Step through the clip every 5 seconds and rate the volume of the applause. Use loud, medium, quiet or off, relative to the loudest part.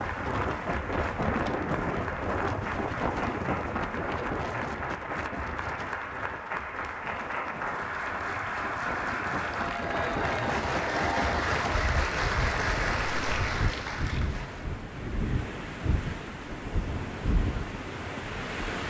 medium, loud, loud, off.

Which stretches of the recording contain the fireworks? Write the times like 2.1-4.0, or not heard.
not heard.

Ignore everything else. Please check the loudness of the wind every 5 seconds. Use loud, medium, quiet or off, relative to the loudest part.
loud, medium, loud, loud.